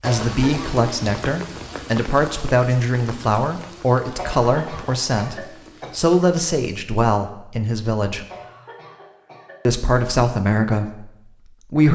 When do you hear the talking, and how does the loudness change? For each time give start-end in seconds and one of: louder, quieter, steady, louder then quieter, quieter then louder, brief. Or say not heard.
0.0-8.2 steady
9.7-11.9 brief.